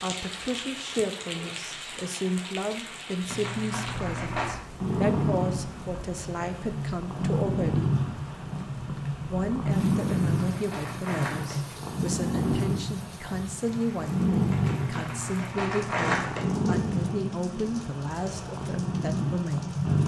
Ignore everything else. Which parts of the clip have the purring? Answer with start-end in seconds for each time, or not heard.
4.8-20.0.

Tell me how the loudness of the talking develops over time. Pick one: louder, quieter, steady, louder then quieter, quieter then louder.
steady.